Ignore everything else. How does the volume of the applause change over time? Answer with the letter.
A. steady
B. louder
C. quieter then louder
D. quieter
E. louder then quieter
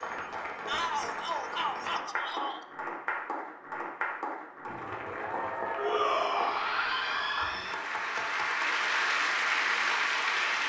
B.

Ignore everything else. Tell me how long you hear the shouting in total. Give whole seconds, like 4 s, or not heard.
4 s.